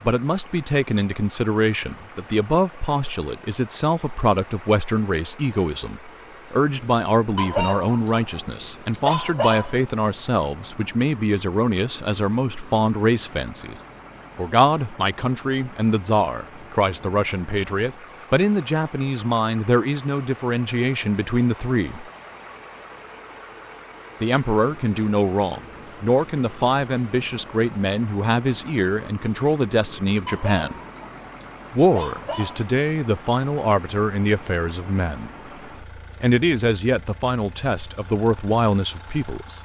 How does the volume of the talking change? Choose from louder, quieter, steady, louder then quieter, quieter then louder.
steady.